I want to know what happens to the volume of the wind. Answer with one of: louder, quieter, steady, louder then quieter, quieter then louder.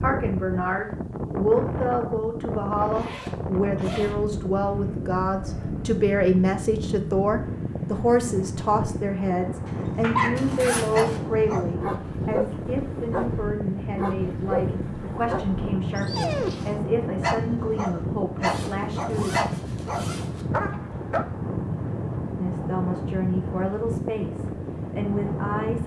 steady.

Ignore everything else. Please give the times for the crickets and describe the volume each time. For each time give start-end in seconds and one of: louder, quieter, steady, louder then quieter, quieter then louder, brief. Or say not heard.
not heard.